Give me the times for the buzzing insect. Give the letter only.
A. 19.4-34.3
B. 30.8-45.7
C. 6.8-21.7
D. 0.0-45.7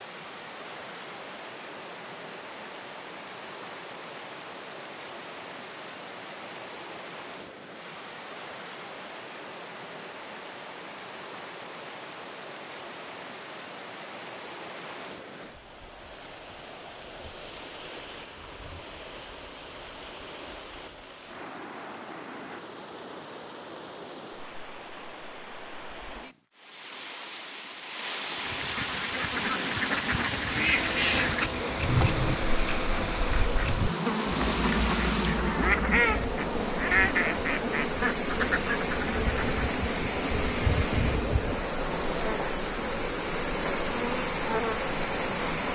B.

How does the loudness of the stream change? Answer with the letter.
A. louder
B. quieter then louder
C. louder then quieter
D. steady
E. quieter
A.